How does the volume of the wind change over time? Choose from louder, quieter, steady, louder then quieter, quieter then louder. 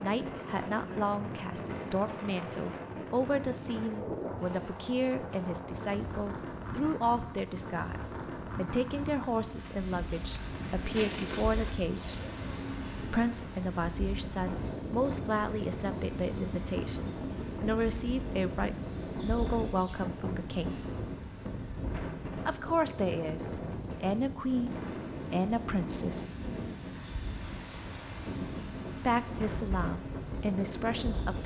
steady.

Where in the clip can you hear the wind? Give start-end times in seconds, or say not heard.
0.0-31.4.